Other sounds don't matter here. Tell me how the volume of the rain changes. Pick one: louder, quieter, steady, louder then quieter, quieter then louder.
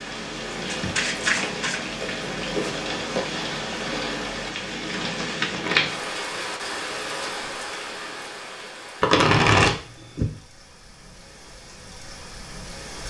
quieter.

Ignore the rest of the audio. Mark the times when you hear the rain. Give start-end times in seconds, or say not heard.
0.0-13.0.